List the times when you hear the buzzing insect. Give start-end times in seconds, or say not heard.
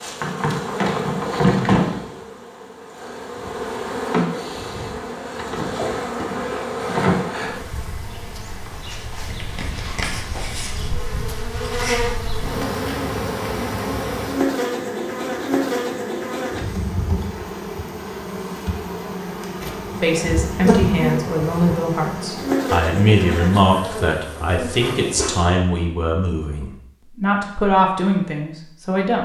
0.0-25.4.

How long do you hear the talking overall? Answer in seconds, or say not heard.
9 s.